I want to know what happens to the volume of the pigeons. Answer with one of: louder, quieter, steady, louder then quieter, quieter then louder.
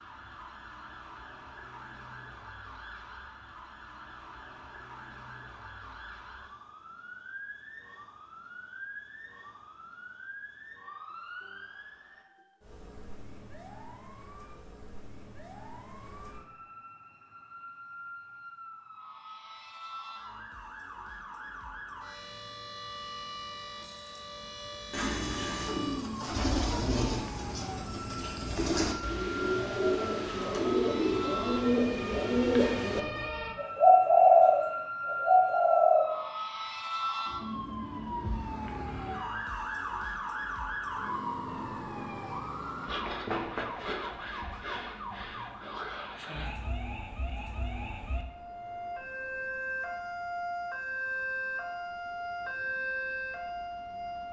louder.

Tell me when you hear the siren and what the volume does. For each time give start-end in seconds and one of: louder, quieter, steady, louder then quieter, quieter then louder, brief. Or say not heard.
0.0-54.2 louder.